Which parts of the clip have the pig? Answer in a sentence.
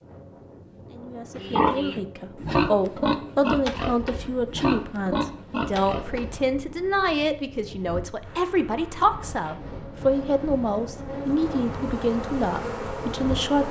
You can hear the pig from 1.4 to 6.4 s.